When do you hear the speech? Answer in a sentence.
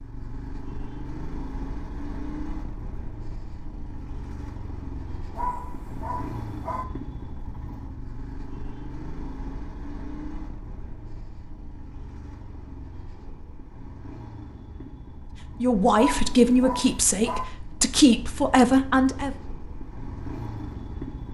You can hear the speech from 15.6 to 19.3 s.